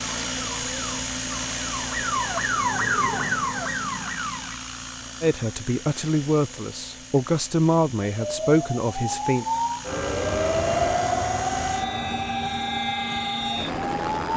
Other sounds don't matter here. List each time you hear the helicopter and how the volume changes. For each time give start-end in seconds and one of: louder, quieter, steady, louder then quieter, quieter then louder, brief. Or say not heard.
0.0-14.3 quieter then louder.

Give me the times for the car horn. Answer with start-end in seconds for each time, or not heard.
not heard.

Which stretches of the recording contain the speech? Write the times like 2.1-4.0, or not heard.
5.2-9.4.